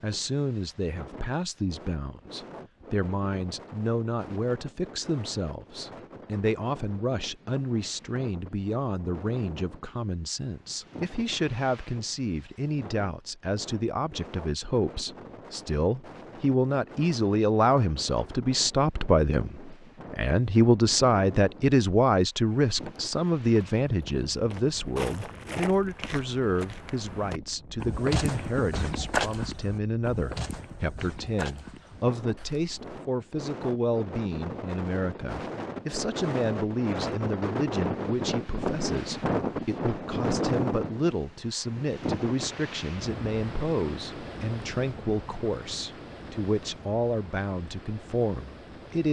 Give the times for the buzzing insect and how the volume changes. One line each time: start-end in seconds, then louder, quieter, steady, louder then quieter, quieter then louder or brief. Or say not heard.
not heard.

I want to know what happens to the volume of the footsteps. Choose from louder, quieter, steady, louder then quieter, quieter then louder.
louder then quieter.